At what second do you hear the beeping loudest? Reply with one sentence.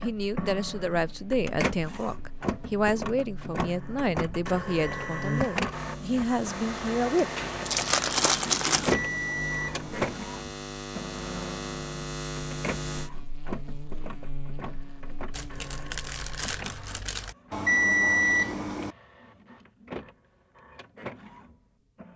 The volume of the beeping peaks at 18 seconds.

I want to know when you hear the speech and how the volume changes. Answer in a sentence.
The speech can be heard from 0.0 to 7.4 s, at a steady volume.